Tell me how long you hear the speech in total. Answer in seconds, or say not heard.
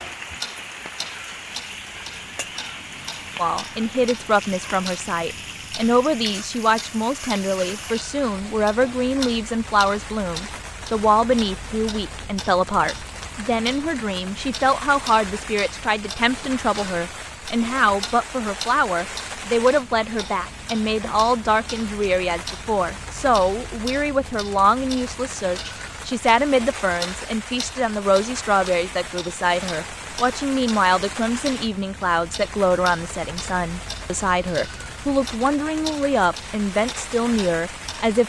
35 s.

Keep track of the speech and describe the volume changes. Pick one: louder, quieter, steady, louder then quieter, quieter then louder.
steady.